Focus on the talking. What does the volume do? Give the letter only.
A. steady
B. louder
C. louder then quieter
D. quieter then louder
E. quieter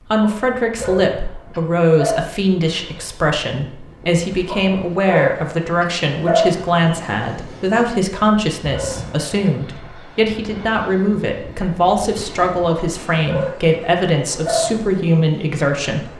A.